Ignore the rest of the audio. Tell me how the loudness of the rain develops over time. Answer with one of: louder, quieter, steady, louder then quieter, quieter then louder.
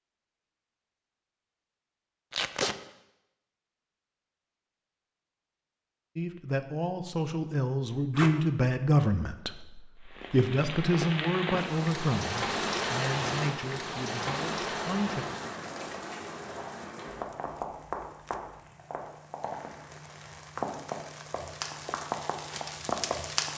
quieter then louder.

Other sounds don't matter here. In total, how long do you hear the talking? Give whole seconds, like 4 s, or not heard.
9 s.